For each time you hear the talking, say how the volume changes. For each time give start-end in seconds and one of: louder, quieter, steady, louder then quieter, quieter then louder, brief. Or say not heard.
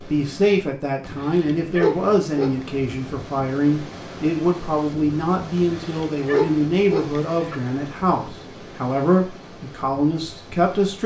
0.0-11.0 steady.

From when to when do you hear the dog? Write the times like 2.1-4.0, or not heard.
1.0-2.5, 5.5-7.5.